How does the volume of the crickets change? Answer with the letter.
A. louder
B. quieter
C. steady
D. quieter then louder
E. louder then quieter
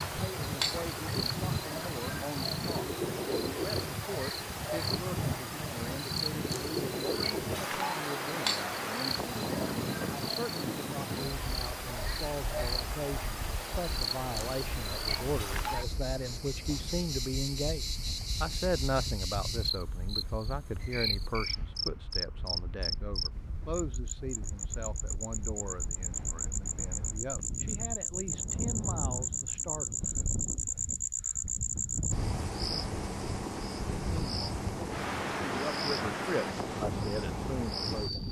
C.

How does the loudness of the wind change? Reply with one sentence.
The volume of the wind goes down, then up.